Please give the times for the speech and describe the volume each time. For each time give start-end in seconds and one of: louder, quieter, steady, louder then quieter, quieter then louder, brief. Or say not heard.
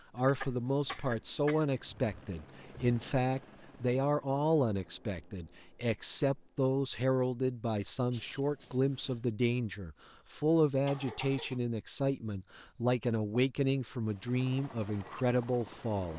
0.1-16.1 steady.